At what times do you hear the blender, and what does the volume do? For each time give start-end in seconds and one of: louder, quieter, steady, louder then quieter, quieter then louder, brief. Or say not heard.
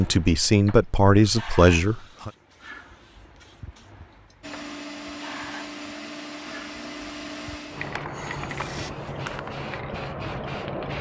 4.4-8.9 quieter.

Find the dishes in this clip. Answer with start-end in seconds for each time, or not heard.
7.9-9.6.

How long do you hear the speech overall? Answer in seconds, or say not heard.
2 s.